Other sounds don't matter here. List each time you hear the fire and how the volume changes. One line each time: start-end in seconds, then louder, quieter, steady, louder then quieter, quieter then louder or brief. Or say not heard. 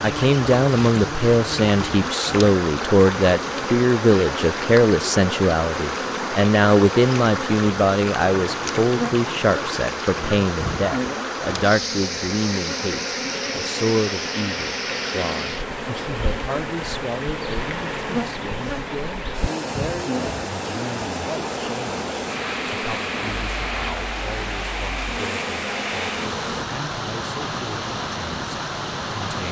not heard.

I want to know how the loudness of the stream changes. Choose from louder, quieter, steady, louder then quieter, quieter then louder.
steady.